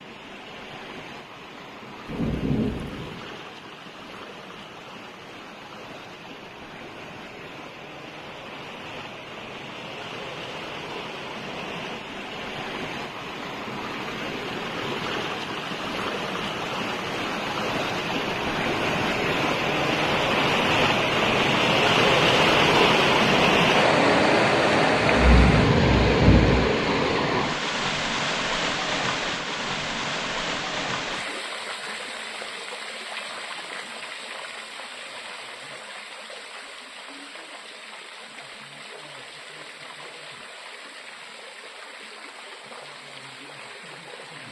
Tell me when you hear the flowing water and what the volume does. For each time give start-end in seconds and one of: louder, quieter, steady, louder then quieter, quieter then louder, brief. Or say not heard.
0.0-44.4 louder then quieter.